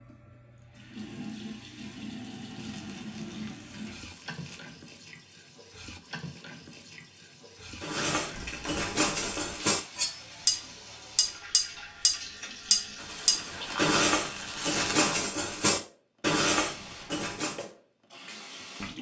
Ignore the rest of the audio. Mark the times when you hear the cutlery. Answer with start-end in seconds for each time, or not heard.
7.8-17.6.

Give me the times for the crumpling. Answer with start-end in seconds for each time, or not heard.
2.4-4.8, 8.3-9.6, 12.9-15.2.